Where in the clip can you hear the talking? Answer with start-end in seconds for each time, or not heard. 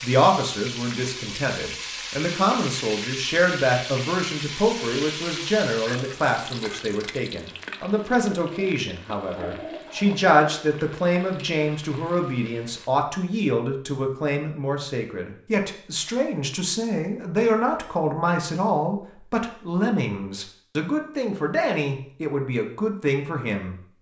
0.0-23.8.